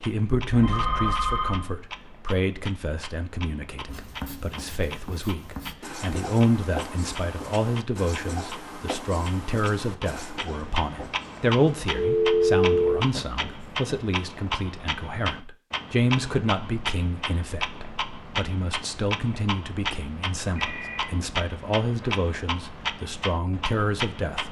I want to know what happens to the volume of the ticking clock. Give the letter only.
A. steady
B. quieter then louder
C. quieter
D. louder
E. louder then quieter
D.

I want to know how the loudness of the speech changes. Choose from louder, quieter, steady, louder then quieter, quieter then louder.
steady.